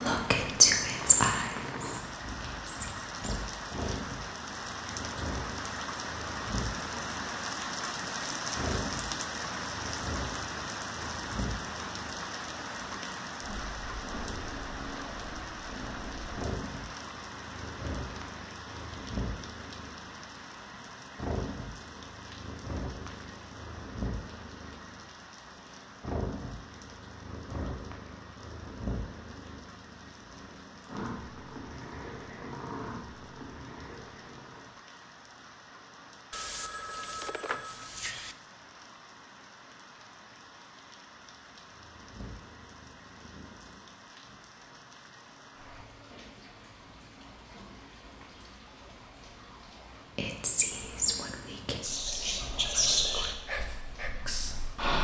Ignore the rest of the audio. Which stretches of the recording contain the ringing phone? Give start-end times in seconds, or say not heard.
36.3-38.4.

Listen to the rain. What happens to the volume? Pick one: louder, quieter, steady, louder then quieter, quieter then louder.
quieter.